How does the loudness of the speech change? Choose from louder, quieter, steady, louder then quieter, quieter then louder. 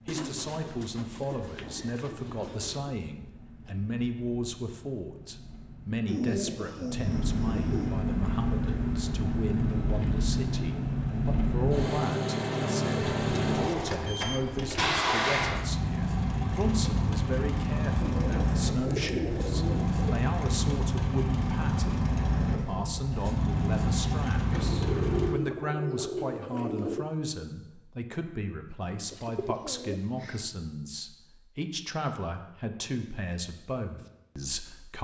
steady.